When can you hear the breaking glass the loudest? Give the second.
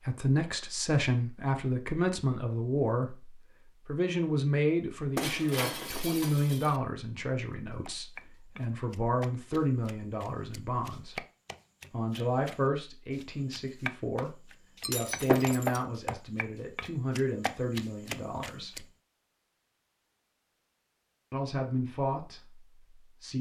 15 s.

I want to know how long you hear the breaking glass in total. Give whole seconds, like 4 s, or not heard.
3 s.